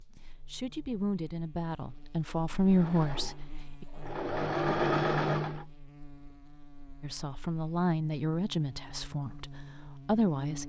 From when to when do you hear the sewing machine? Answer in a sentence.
The sewing machine can be heard from 2.6 to 5.7 s.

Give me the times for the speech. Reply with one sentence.
You can hear the speech from 0.1 to 3.9 s and from 7.0 to 10.6 s.